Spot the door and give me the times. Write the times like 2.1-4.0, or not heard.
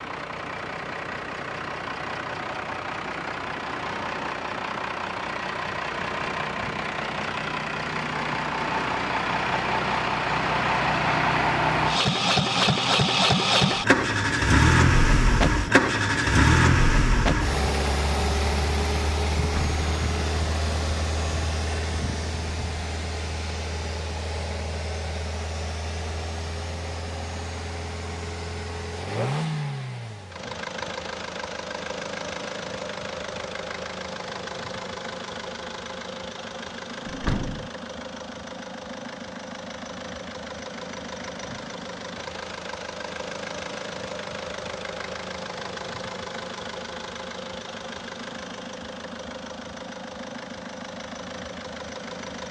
19.4-19.9, 37.0-37.7.